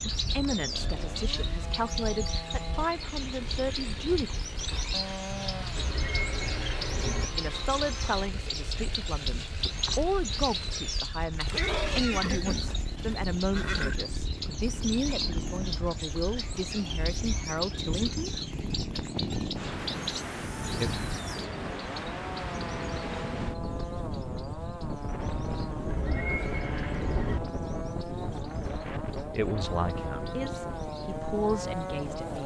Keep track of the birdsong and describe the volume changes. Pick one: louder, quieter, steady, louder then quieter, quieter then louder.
quieter.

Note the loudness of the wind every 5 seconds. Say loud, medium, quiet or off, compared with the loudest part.
medium, medium, medium, loud, loud, loud, loud.